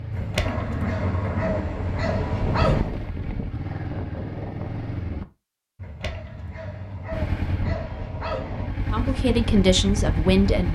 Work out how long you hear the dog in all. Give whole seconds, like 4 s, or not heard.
6 s.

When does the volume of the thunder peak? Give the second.
1 s.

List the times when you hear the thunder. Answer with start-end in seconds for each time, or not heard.
0.4-2.5.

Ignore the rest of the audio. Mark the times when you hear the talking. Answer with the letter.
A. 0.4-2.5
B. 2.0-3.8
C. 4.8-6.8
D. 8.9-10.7
D.